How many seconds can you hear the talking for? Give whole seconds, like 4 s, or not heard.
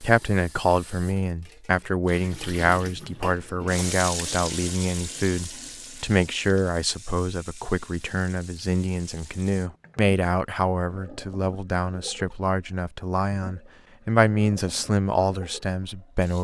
16 s.